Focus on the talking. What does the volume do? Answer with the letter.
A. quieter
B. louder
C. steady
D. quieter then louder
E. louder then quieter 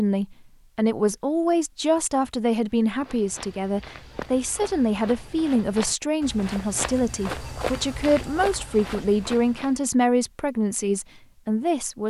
C.